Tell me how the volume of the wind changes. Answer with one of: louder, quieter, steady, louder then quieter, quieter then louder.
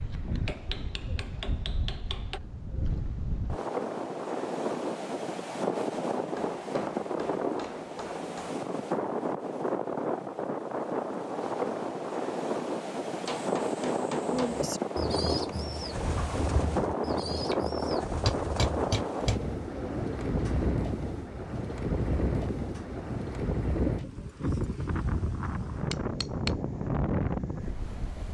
steady.